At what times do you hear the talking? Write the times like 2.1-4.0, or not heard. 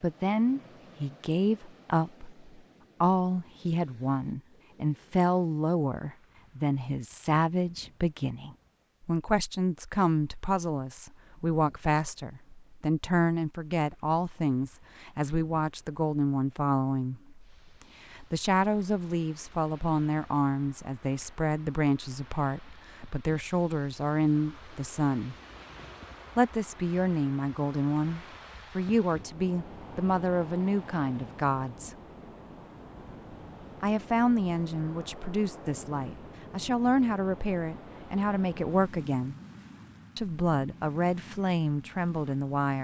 0.0-17.4, 18.1-25.4, 26.4-31.9, 33.8-39.4, 40.1-42.7.